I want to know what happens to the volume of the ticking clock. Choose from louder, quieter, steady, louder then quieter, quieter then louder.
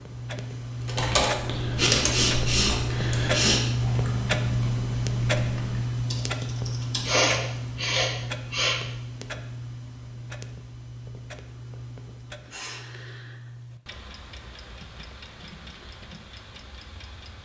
quieter.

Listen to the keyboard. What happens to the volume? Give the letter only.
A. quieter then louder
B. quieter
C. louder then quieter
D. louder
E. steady
B.